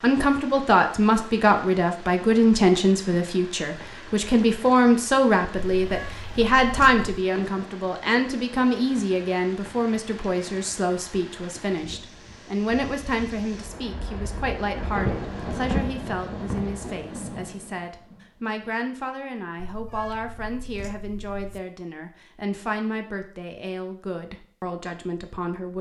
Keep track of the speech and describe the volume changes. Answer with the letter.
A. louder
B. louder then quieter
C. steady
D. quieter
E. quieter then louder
D.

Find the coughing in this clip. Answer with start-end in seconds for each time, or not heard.
not heard.